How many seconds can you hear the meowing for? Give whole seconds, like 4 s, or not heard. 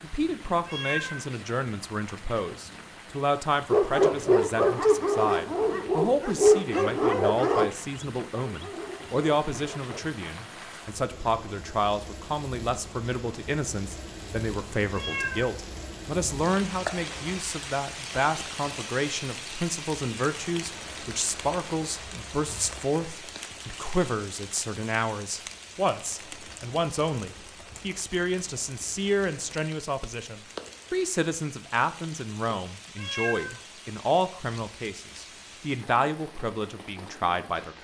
2 s.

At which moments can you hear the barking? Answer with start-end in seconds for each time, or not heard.
3.7-10.1.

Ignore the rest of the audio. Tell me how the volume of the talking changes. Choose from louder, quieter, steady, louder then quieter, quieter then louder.
steady.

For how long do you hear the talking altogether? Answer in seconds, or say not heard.
38 s.